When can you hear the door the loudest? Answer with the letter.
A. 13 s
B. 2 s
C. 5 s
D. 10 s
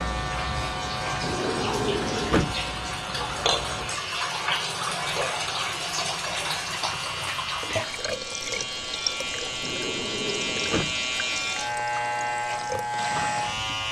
B.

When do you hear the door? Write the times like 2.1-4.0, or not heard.
1.1-2.6, 9.4-11.0.